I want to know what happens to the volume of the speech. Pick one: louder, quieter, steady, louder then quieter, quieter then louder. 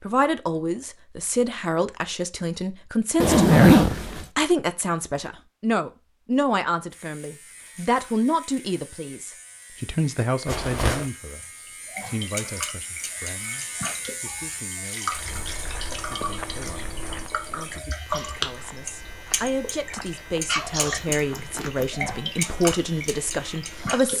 quieter then louder.